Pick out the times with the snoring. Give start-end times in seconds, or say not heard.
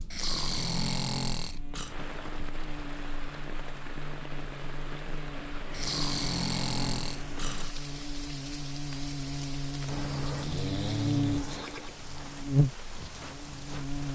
0.1-1.9, 5.8-7.7, 9.8-11.9.